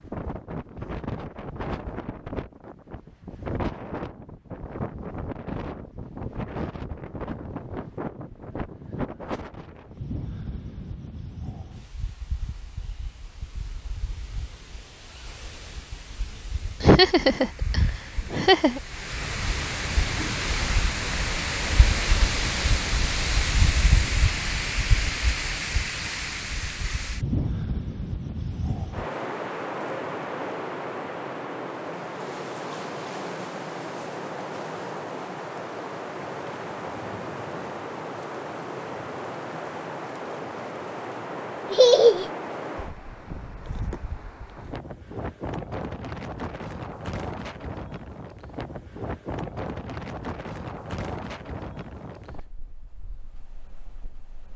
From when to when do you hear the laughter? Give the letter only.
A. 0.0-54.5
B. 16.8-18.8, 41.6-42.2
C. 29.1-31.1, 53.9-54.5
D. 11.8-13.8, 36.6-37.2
B.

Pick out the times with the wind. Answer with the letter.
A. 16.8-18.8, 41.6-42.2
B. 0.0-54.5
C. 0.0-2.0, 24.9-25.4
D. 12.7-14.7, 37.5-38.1
B.